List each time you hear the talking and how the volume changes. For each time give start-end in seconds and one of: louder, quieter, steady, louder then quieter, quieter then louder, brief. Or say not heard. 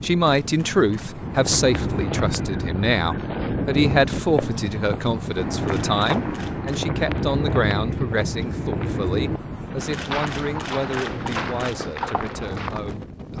0.0-13.3 quieter.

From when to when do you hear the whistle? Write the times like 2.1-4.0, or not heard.
not heard.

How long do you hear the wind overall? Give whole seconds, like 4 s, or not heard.
13 s.